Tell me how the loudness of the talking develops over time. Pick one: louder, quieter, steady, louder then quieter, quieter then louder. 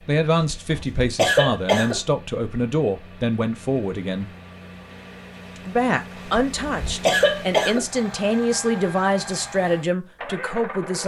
steady.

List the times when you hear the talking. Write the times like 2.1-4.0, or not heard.
0.1-4.3, 5.7-11.0.